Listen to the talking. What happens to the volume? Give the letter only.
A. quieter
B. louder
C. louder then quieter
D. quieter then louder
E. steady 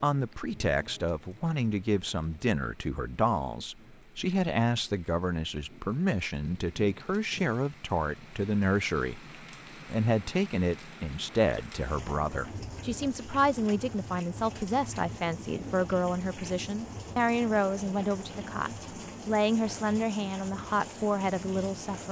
E.